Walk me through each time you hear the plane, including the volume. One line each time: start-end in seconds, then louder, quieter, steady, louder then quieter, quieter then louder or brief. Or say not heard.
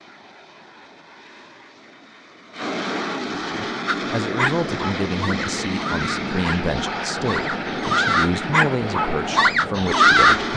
0.0-10.5 louder.